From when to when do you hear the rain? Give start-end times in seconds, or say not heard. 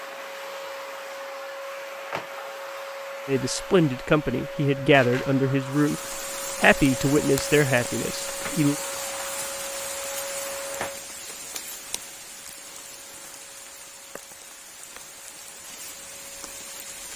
5.7-17.1.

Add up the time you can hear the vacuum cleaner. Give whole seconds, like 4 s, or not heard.
17 s.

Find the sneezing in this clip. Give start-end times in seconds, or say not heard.
not heard.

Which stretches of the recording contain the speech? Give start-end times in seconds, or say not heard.
3.2-8.8.